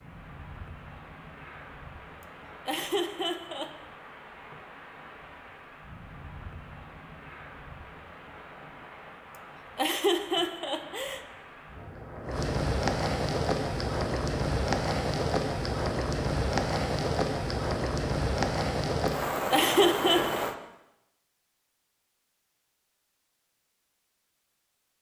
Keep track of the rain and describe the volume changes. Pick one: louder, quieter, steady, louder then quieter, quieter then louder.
louder.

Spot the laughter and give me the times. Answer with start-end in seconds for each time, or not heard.
2.6-3.7, 9.8-11.2, 19.5-20.4.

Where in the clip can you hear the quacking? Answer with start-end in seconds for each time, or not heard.
not heard.